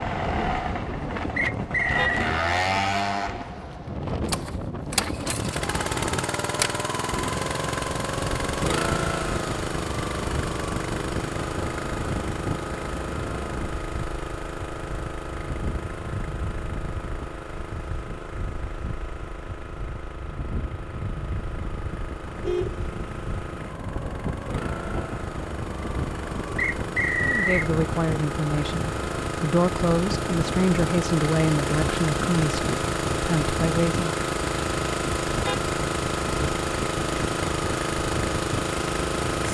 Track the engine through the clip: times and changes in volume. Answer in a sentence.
You can hear the engine from 0.0 to 39.4 s, getting quieter then louder.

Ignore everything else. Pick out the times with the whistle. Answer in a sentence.
The whistle can be heard from 1.4 to 2.2 s and from 26.6 to 27.7 s.